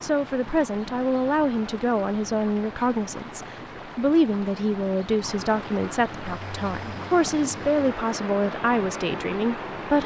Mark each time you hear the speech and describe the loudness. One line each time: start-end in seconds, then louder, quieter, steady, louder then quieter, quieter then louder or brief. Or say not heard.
0.0-10.0 steady.